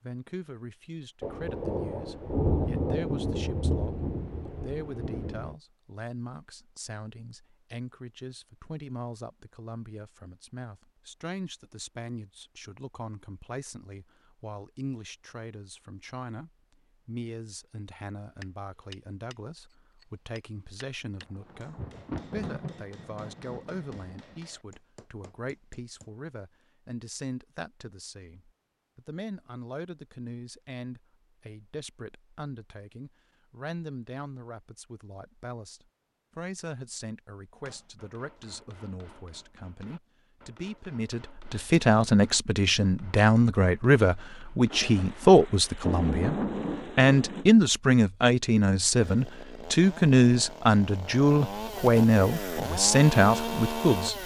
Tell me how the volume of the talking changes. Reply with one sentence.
The loudness of the talking goes up.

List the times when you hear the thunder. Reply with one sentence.
The thunder can be heard from 1.2 to 5.5 s, from 21.2 to 24.4 s and from 44.7 to 47.5 s.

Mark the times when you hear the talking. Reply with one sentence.
The talking can be heard from 0.0 to 46.4 s and from 47.0 to 54.2 s.